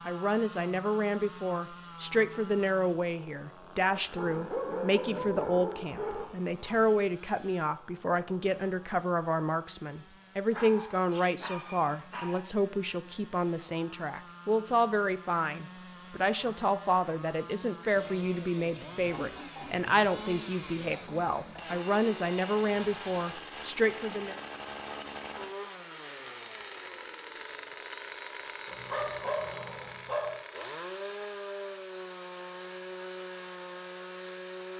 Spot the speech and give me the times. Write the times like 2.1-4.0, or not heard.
0.1-24.4.